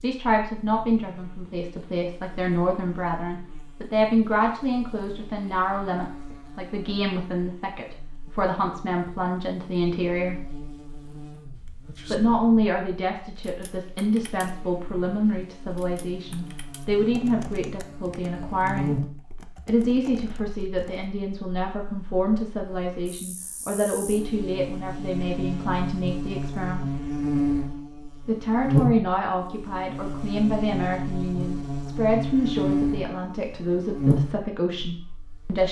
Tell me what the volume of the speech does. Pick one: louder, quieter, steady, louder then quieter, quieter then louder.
steady.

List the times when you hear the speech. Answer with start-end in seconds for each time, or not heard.
0.0-10.4, 12.1-18.9, 19.6-26.9, 28.2-35.6.